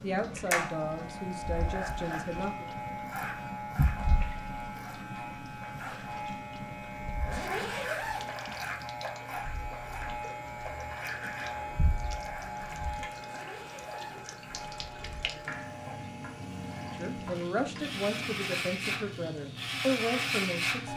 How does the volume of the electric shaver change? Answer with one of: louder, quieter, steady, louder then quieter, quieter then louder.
quieter then louder.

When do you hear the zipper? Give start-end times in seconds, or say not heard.
7.2-8.4, 13.2-14.8.